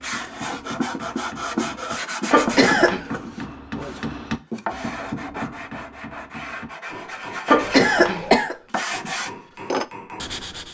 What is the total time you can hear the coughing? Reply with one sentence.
The coughing can be heard for 2 seconds in total.